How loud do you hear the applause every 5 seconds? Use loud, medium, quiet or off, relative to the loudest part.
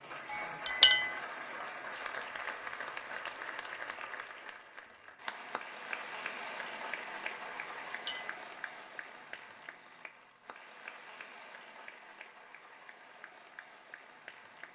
loud, loud, medium.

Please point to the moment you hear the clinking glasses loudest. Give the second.
1 s.